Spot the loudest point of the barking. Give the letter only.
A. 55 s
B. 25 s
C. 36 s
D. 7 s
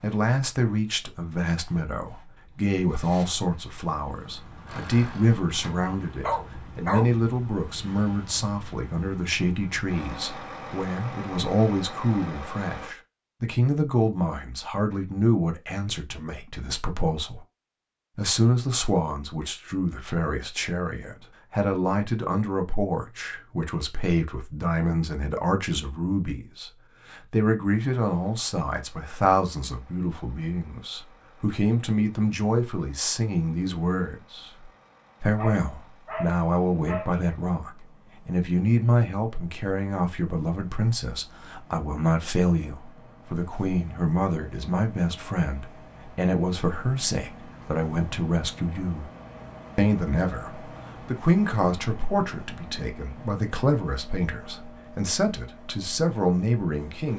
D.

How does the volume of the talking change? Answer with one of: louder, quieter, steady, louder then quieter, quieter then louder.
steady.